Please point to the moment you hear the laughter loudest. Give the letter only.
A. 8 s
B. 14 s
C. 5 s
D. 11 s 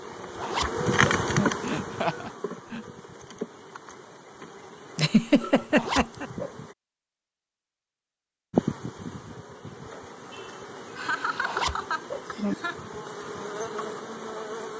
C.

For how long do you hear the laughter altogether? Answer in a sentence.
You can hear the laughter for 5 seconds altogether.